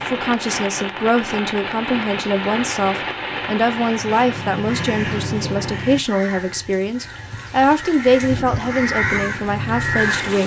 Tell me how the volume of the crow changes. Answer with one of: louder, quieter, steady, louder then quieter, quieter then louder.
quieter then louder.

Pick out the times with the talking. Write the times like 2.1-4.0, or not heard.
0.0-10.4.